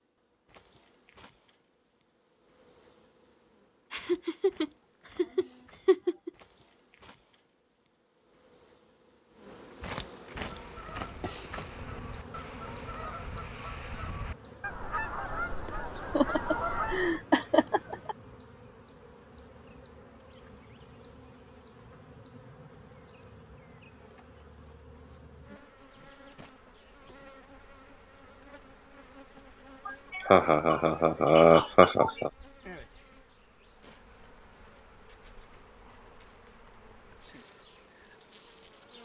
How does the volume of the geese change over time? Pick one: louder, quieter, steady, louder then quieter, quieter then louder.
louder.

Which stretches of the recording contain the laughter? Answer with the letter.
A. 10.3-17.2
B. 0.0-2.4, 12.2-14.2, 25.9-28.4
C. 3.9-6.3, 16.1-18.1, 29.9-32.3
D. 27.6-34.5
C.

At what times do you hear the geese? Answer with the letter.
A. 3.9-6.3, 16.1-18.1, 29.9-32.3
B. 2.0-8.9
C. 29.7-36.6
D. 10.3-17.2
D.